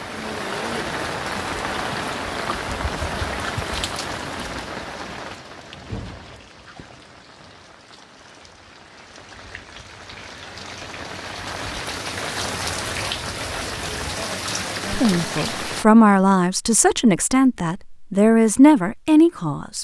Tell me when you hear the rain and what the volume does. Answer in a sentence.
You can hear the rain from 0.0 to 15.8 s, getting quieter then louder.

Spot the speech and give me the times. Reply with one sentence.
The speech can be heard from 14.9 to 19.7 s.